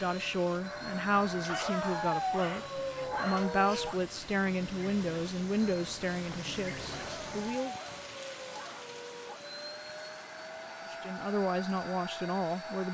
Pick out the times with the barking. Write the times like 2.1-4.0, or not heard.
1.4-4.0, 6.9-9.4.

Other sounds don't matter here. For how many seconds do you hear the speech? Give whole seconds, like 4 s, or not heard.
10 s.